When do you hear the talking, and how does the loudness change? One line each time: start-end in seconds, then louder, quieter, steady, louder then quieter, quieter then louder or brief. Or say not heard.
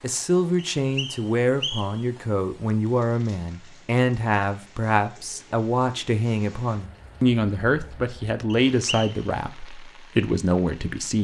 0.0-11.1 steady.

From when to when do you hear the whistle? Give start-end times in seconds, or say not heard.
0.8-2.0, 8.5-9.2.